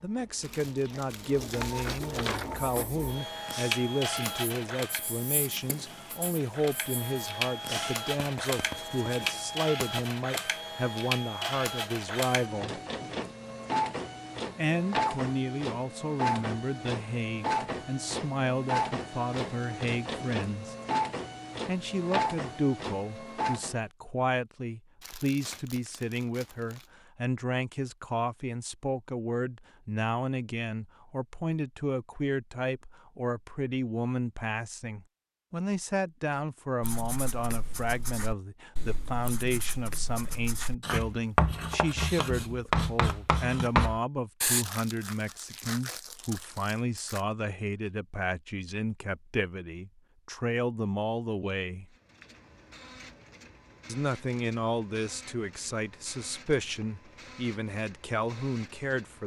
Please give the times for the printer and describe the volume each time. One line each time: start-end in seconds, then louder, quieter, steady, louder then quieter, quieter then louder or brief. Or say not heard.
0.0-23.8 steady
51.9-59.2 steady.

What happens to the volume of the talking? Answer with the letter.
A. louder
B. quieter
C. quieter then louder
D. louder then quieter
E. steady
E.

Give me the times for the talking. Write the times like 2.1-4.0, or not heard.
0.0-12.8, 14.6-20.8, 21.6-51.9, 53.9-59.2.